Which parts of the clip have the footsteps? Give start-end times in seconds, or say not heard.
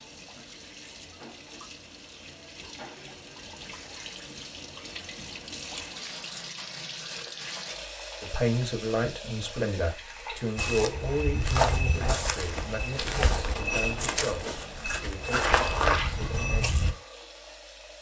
10.6-16.9.